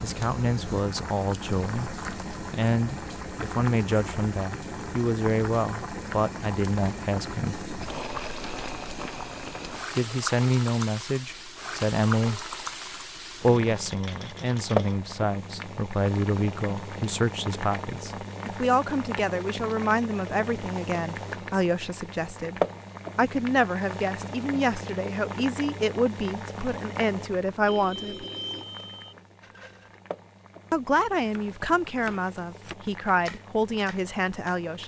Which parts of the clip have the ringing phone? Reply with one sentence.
The ringing phone can be heard from 27.6 to 29.1 s.